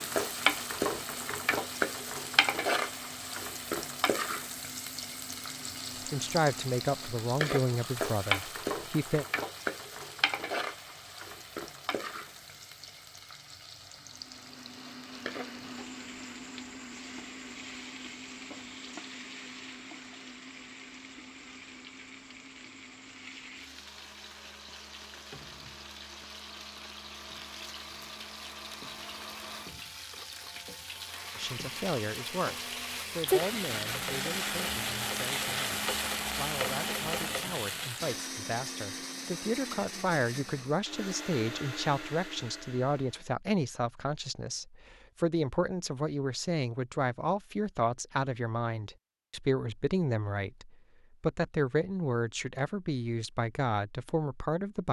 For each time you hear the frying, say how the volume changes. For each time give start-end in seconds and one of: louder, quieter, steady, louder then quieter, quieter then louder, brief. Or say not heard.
0.0-38.3 quieter then louder.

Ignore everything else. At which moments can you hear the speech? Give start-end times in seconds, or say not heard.
6.1-9.2, 31.4-54.8.